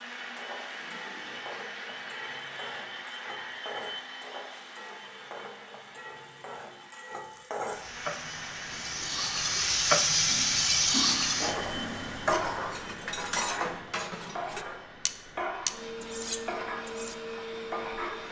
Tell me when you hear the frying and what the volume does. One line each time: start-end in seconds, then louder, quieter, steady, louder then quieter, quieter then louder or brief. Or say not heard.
0.1-18.2 louder then quieter.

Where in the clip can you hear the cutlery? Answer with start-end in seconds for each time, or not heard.
10.3-17.1.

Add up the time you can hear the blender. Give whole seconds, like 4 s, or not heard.
18 s.